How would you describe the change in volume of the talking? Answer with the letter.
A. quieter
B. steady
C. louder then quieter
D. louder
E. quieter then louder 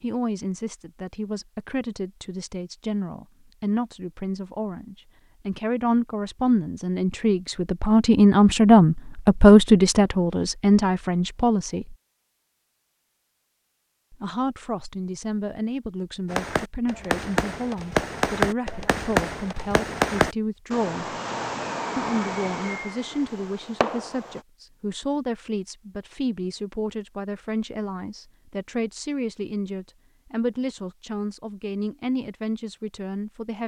C.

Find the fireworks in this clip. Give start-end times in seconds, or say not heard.
16.3-24.4.